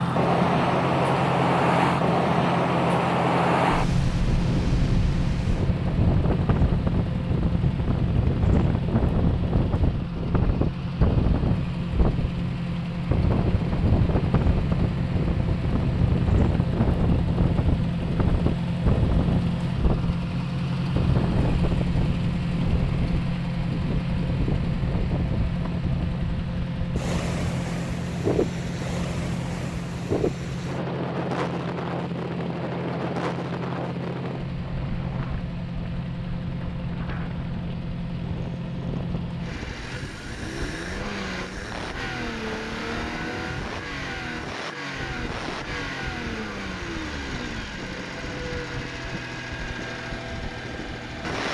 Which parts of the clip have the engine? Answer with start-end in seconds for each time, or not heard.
0.0-51.4.